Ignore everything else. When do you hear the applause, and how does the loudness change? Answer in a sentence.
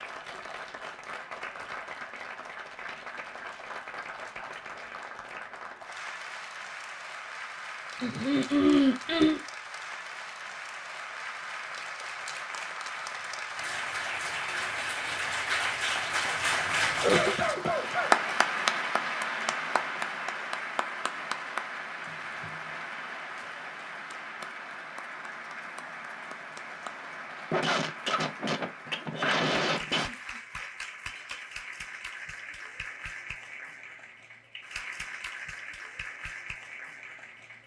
The applause can be heard from 0.0 to 37.6 s, getting louder then quieter.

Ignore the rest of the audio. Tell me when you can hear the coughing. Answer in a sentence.
The coughing can be heard from 8.0 to 9.4 s, from 17.0 to 18.1 s and from 27.5 to 30.1 s.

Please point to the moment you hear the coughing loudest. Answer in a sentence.
The loudest moment of the coughing is at 9 seconds.